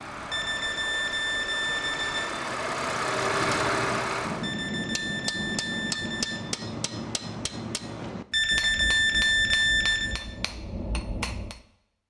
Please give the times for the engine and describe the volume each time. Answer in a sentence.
The engine can be heard from 0.0 to 4.5 s, getting louder.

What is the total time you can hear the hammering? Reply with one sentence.
You can hear the hammering for 8 seconds altogether.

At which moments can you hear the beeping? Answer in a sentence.
The beeping can be heard from 0.3 to 2.3 s, from 4.4 to 6.4 s and from 8.3 to 10.2 s.